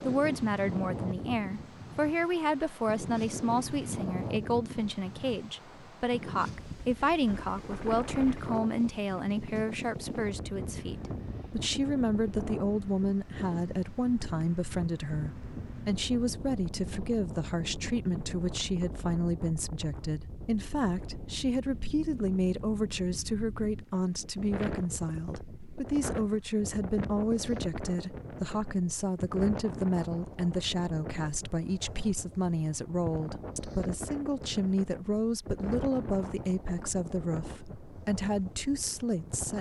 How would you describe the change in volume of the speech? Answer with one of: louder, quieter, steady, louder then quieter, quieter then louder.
steady.